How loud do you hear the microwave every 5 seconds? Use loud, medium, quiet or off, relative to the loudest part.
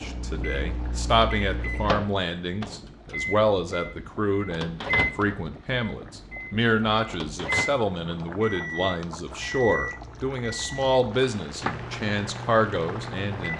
loud, loud, medium.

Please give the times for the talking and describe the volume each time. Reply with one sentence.
The talking can be heard from 0.0 to 13.5 s, at a steady volume.